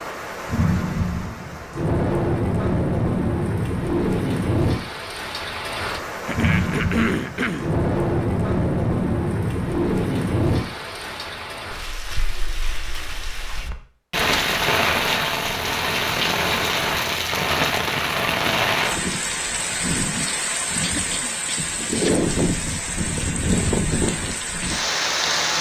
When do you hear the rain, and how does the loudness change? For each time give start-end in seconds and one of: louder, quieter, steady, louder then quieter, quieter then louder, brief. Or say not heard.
0.0-25.5 steady.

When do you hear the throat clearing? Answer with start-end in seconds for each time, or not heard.
6.2-7.7, 20.8-22.3.